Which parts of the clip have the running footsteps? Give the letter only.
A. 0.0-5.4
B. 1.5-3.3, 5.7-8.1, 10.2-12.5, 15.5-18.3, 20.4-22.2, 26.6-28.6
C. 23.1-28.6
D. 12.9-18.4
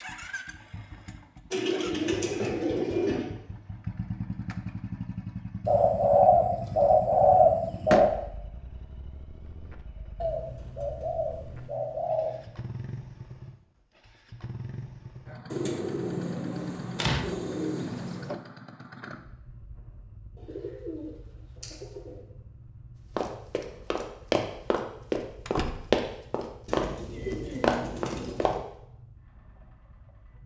C.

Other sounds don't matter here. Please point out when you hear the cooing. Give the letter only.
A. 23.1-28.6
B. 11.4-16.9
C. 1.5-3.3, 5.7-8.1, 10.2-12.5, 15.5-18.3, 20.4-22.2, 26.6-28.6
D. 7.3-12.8
C.